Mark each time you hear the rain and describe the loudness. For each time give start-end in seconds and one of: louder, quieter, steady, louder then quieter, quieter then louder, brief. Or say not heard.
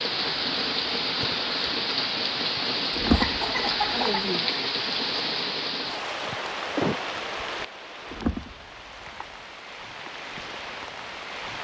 0.0-11.5 quieter.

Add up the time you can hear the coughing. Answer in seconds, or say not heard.
2 s.